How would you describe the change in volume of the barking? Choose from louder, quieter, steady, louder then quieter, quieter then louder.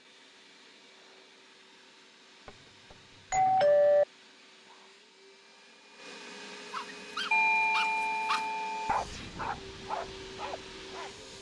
quieter.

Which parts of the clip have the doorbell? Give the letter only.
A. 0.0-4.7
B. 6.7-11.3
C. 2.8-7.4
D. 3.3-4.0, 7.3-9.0
D.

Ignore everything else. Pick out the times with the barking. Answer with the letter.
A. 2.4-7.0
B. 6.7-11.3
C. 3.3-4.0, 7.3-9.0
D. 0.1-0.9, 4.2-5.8
B.